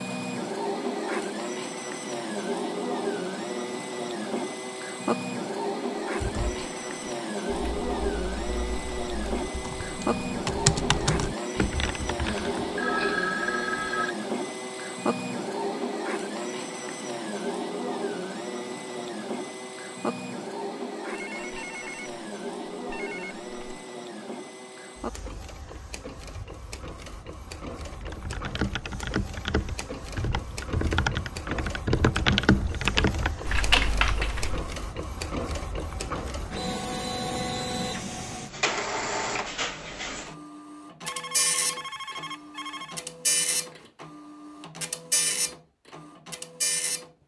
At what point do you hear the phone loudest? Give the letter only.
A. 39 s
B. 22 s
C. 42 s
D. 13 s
D.